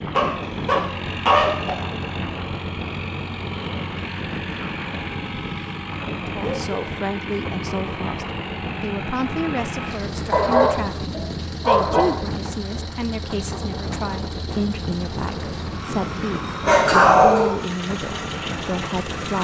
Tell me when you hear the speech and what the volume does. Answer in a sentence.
You can hear the speech from 6.2 to 19.3 s, at a steady volume.